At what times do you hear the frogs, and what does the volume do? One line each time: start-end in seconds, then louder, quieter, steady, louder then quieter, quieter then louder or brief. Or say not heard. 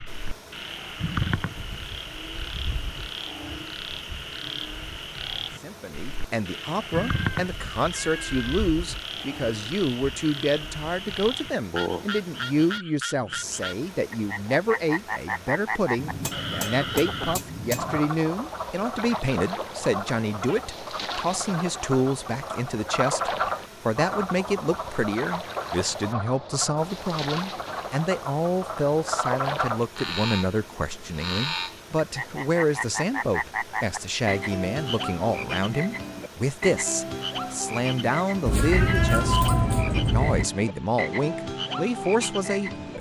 0.0-42.9 steady.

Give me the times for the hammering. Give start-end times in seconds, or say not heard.
15.9-18.1.